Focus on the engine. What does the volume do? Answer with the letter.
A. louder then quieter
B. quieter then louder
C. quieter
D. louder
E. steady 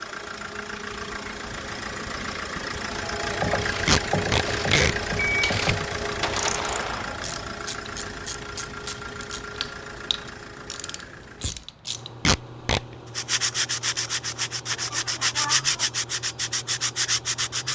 C.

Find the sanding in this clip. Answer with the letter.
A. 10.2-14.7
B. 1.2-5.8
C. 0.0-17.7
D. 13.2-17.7
D.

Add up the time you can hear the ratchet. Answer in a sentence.
You can hear the ratchet for 9 seconds altogether.